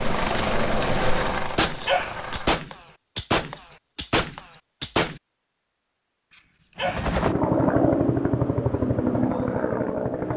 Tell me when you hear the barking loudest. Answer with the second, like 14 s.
2 s.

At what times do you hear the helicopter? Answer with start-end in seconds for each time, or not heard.
0.0-2.6, 6.8-10.3.